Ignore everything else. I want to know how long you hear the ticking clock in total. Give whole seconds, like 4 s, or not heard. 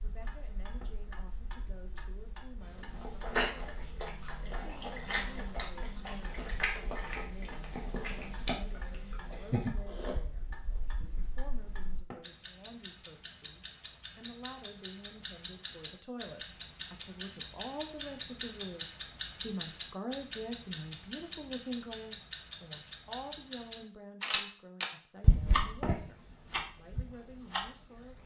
28 s.